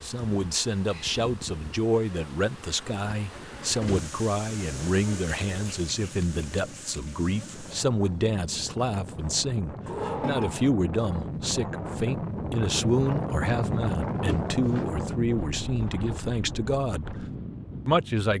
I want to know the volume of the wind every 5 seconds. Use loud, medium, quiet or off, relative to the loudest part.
quiet, medium, loud, medium.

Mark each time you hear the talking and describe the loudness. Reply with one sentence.
You can hear the talking from 0.0 to 18.3 s, at a steady volume.